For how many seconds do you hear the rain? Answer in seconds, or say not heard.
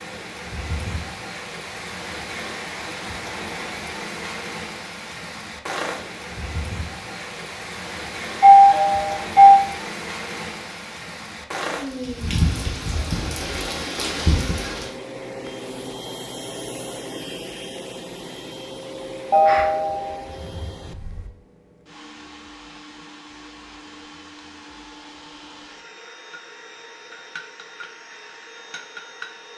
15 s.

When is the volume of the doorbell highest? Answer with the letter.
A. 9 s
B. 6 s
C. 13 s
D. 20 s
A.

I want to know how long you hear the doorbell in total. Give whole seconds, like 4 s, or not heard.
3 s.